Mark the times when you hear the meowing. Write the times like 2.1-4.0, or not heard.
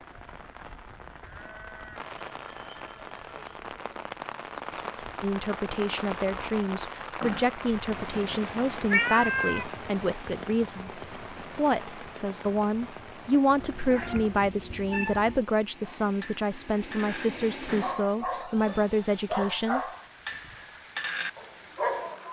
8.9-9.7, 13.6-15.4.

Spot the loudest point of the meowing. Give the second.
9 s.